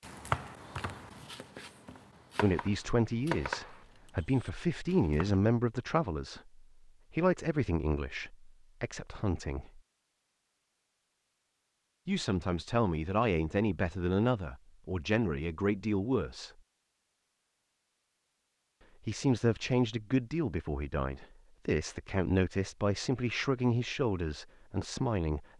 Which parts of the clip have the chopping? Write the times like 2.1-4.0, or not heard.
0.0-5.4.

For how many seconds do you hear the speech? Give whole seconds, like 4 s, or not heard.
18 s.